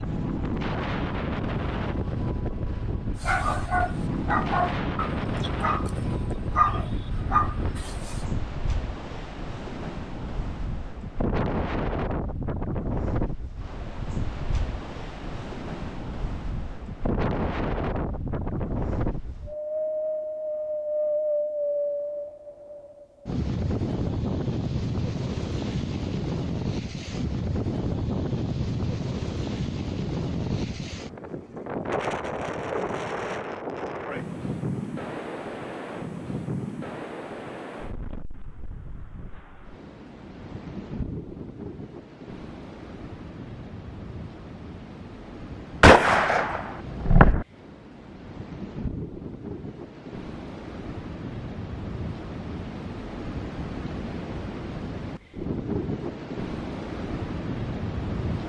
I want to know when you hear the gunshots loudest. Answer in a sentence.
The volume of the gunshots peaks at 46 seconds.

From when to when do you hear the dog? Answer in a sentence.
The dog can be heard from 3.1 to 8.2 s.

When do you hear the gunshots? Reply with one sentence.
The gunshots can be heard from 45.8 to 47.5 s.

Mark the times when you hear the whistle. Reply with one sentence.
You can't hear the whistle here.